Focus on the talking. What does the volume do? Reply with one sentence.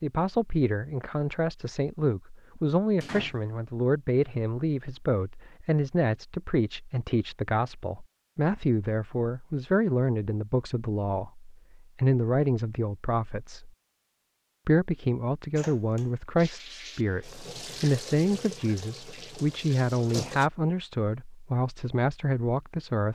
The loudness of the talking stays about the same.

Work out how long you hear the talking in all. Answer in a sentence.
You can hear the talking for 22 seconds altogether.